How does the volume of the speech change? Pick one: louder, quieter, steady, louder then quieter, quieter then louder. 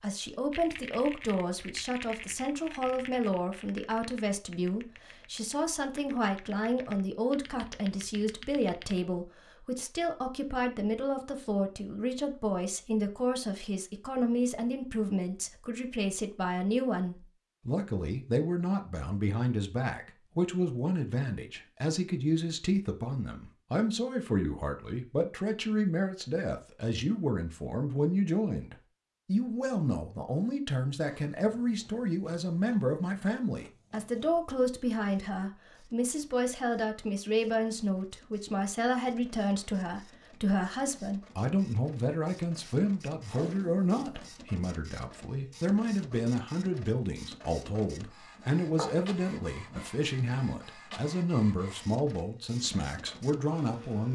steady.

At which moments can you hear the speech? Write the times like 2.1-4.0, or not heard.
0.0-54.1.